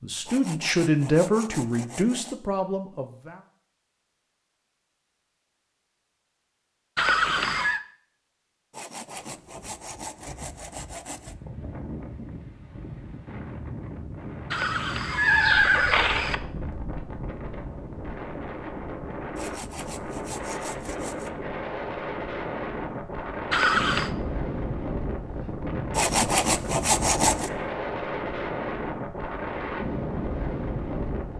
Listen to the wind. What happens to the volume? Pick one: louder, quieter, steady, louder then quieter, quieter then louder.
louder.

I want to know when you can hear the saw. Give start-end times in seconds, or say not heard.
0.2-2.4, 8.7-11.3, 19.4-21.3, 25.9-27.5.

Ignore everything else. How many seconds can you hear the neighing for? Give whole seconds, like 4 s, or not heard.
3 s.